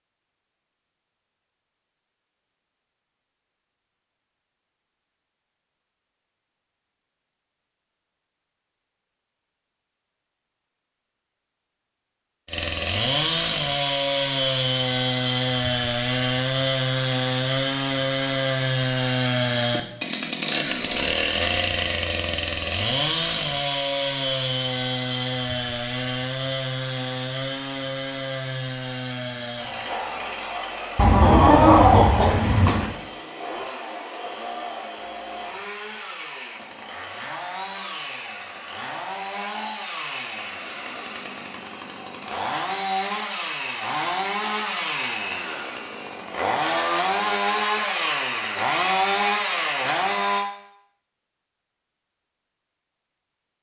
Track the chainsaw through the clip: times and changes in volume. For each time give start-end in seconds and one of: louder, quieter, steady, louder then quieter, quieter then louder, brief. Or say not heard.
12.4-50.5 quieter then louder.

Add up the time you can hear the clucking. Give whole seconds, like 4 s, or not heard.
2 s.